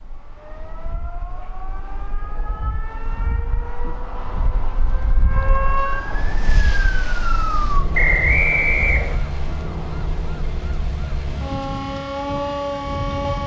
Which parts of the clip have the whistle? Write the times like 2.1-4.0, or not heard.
7.9-9.2.